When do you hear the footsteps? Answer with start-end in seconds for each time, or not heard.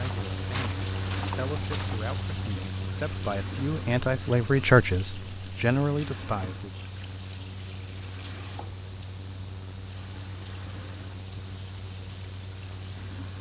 0.0-2.1.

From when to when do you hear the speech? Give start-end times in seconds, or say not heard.
0.0-6.8.